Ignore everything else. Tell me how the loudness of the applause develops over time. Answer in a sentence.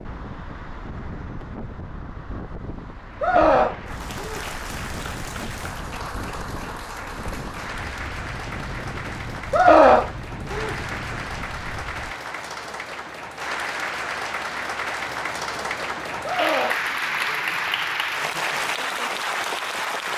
The volume of the applause goes up.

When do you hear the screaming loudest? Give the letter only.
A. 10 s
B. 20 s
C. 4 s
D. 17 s
A.